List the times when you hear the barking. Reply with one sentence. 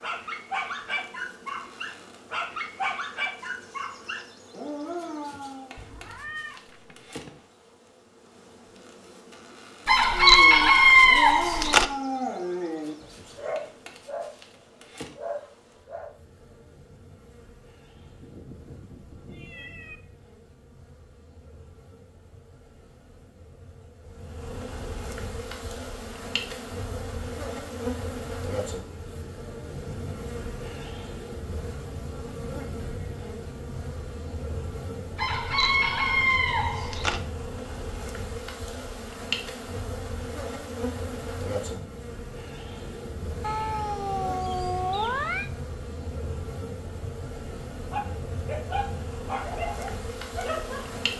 You can hear the barking from 0.0 to 5.7 s, from 9.8 to 16.1 s and from 47.9 to 51.0 s.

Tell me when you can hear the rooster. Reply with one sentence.
You can hear the rooster from 9.8 to 11.8 s and from 35.1 to 37.2 s.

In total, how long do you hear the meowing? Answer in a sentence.
The meowing can be heard for 6 seconds in total.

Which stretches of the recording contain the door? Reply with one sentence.
You can't hear the door here.